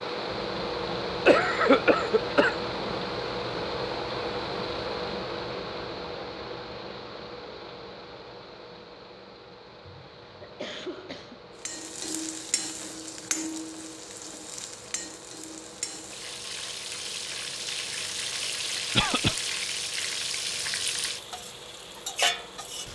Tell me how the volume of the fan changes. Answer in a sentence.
The volume of the fan goes down.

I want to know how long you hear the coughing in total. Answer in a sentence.
You can hear the coughing for 4 seconds altogether.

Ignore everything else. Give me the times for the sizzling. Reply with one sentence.
The sizzling can be heard from 11.7 to 22.8 s.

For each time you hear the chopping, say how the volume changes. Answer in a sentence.
The chopping can't be heard in this clip.